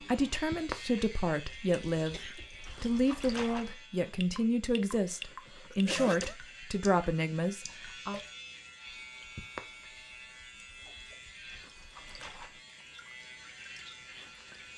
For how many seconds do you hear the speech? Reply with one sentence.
The speech can be heard for 8 seconds in total.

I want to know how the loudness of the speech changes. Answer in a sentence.
The loudness of the speech stays about the same.